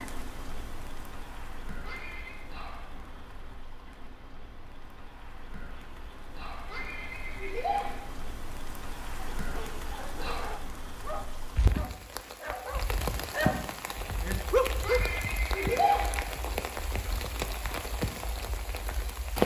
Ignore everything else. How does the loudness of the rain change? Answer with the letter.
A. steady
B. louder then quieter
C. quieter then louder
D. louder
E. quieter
D.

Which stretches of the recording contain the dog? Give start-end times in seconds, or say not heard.
9.3-15.0.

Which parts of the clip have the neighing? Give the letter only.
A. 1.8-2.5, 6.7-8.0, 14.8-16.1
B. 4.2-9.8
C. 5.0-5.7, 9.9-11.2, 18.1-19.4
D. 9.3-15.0
A.